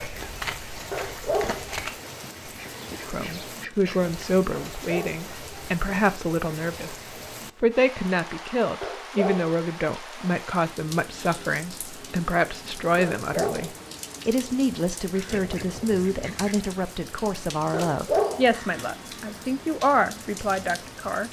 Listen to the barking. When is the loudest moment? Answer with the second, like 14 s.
18 s.